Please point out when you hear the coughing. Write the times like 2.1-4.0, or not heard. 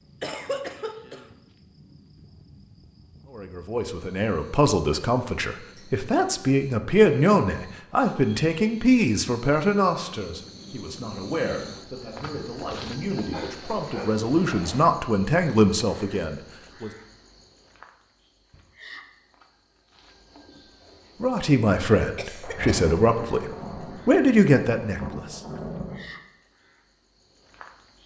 0.2-1.2, 12.2-13.6, 22.1-22.8.